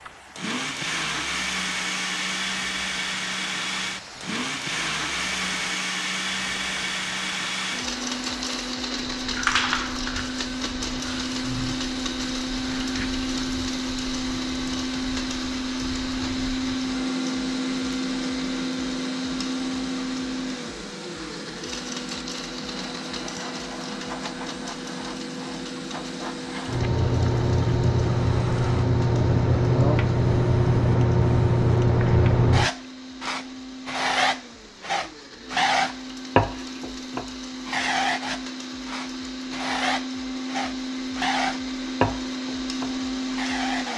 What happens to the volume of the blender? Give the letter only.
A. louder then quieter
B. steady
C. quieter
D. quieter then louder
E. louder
D.